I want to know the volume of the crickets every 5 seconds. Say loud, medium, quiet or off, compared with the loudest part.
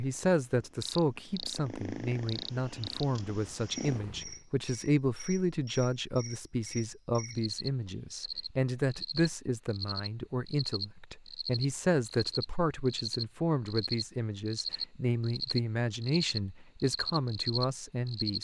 medium, medium, loud, loud.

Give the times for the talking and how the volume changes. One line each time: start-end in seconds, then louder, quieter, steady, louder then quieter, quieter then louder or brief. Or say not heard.
0.0-18.3 steady.